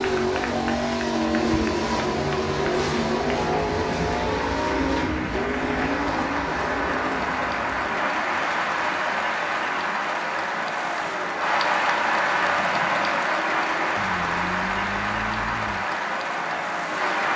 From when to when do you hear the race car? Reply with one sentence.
The race car can be heard from 0.0 to 17.3 s.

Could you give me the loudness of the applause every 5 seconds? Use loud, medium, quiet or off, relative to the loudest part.
medium, loud, loud, loud.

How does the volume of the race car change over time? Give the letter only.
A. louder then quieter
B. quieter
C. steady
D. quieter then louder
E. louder
B.